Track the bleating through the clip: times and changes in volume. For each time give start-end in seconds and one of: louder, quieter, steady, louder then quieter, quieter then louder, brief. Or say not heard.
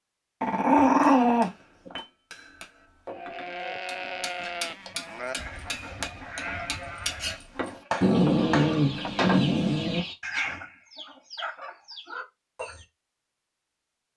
3.1-9.2 quieter.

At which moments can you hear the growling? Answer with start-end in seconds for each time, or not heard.
0.4-2.0, 8.0-10.0.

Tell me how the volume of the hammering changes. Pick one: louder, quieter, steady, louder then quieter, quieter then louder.
louder.